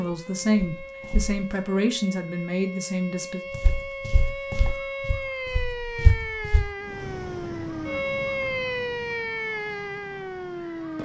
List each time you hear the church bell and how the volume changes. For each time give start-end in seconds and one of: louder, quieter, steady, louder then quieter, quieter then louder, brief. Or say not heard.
not heard.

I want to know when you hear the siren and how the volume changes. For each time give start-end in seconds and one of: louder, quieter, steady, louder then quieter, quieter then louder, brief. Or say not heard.
0.0-11.0 louder.